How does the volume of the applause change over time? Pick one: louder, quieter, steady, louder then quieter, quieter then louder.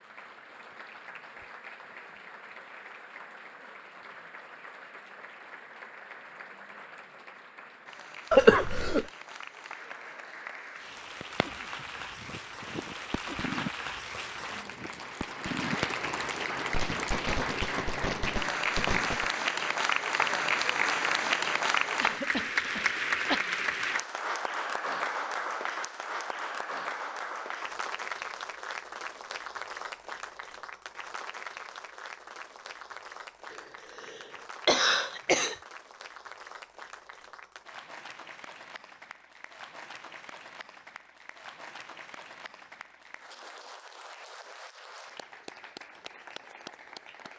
louder then quieter.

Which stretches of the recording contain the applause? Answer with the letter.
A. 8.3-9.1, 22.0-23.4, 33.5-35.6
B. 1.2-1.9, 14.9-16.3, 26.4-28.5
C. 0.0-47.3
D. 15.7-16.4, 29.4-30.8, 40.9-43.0
C.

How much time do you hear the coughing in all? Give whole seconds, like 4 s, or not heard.
4 s.